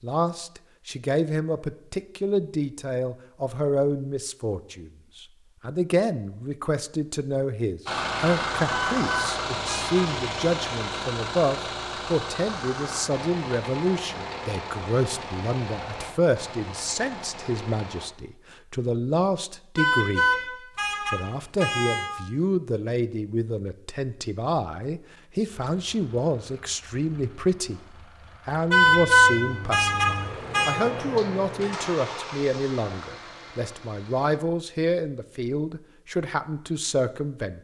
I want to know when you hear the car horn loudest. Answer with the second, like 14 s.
29 s.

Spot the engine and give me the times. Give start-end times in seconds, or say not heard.
7.8-18.1, 25.6-34.4.